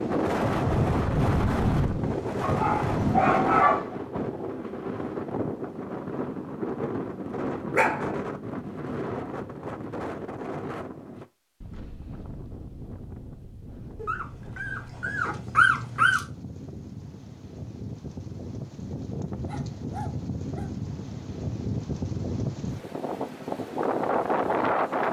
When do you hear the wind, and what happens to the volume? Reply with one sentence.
The wind can be heard from 0.0 to 25.0 s, getting quieter then louder.